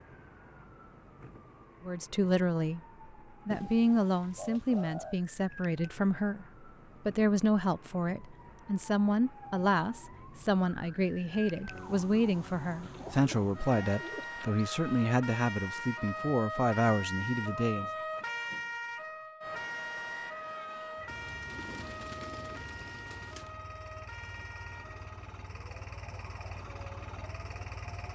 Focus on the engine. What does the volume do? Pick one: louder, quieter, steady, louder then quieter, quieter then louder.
louder.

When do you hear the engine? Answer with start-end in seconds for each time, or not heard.
20.1-28.1.